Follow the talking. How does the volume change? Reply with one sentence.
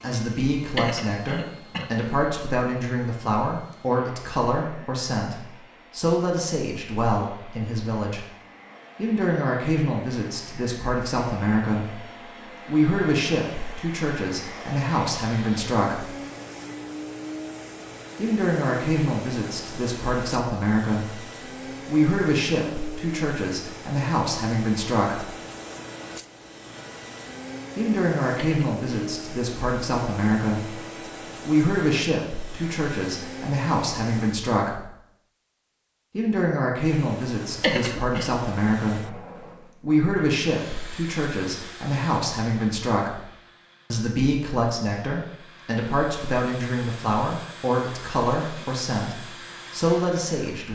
The volume of the talking stays about the same.